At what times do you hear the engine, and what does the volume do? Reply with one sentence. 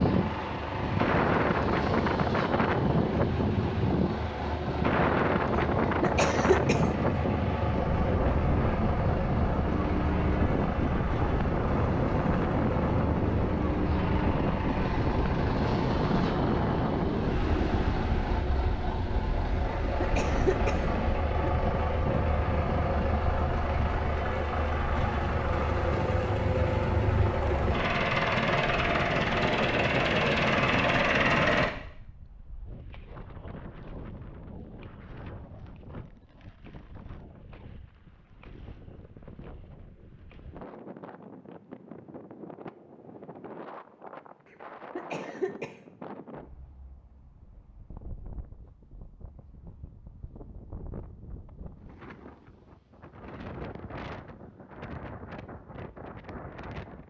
The engine can be heard from 0.0 to 31.7 s, getting louder.